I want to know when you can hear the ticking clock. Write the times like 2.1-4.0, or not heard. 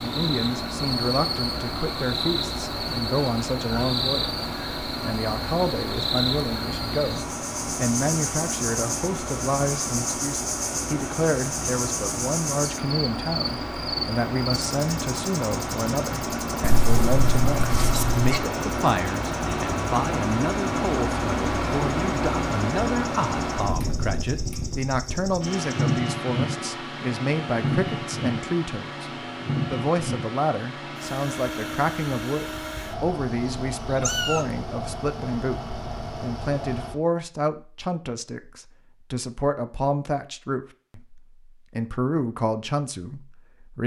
not heard.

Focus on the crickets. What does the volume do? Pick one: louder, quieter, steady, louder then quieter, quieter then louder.
quieter.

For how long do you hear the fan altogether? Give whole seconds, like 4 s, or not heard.
37 s.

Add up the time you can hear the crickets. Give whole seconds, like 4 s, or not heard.
26 s.